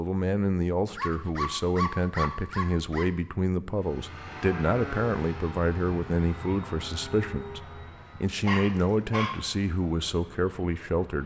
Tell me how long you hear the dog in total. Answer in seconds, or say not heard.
3 s.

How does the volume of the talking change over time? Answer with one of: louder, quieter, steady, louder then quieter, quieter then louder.
steady.